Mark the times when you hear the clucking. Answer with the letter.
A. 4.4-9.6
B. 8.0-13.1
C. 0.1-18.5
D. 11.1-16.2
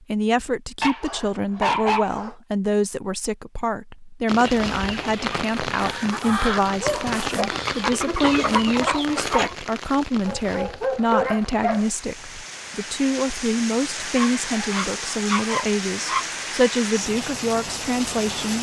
A.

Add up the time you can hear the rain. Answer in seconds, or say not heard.
14 s.